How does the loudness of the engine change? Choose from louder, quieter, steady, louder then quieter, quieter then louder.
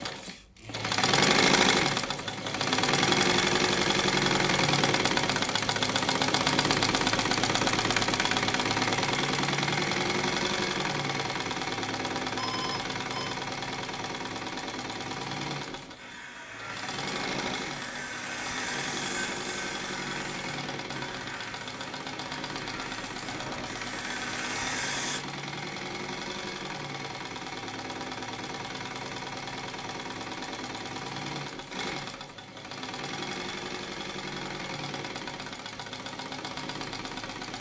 quieter.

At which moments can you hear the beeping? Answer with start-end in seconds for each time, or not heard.
12.3-13.3.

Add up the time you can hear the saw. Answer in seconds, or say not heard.
9 s.